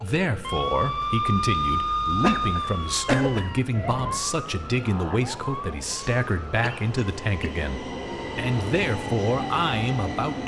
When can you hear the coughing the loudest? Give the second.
3 s.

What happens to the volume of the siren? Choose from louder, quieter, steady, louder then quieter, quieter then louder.
quieter.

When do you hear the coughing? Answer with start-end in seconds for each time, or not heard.
2.2-3.5, 6.0-7.5.